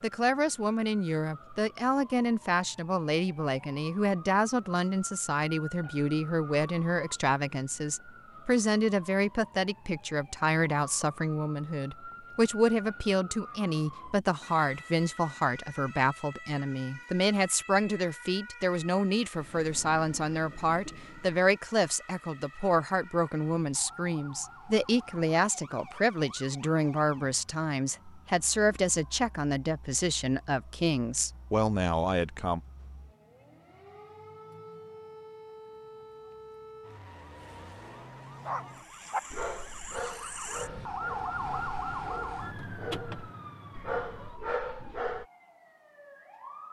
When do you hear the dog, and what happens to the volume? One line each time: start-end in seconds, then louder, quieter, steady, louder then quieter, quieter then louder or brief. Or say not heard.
38.5-45.2 quieter then louder.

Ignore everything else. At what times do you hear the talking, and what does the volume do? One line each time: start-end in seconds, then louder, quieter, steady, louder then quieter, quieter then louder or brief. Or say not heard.
0.0-32.6 steady.